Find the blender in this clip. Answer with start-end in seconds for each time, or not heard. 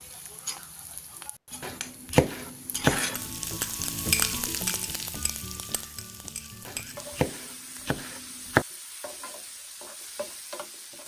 not heard.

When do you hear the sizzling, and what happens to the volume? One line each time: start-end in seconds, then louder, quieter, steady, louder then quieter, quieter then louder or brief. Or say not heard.
0.0-11.0 louder then quieter.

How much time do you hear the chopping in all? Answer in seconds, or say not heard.
4 s.